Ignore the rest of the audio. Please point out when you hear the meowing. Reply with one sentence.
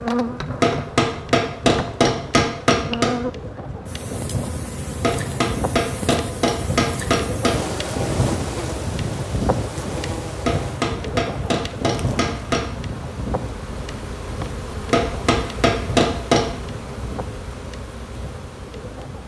The meowing can't be heard in this clip.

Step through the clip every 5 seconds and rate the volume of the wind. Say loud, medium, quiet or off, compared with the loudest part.
medium, loud, loud, medium.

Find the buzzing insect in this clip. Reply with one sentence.
You can hear the buzzing insect from 0.0 to 19.2 s.